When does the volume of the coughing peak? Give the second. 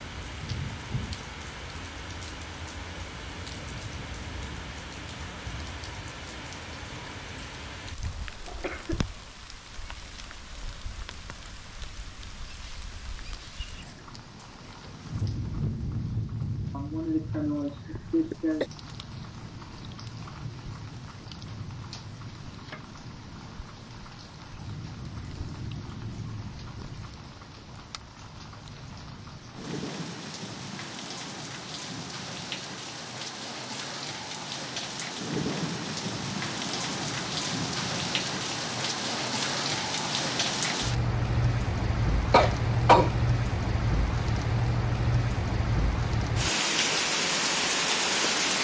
43 s.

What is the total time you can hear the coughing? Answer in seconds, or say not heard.
4 s.